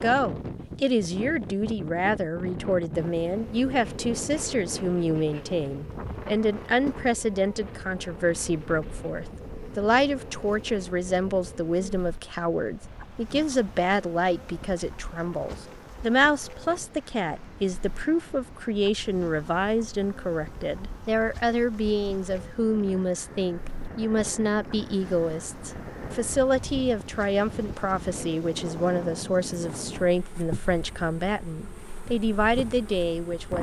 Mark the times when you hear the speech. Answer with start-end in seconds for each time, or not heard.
0.0-33.5.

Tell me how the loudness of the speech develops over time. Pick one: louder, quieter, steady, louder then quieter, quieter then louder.
steady.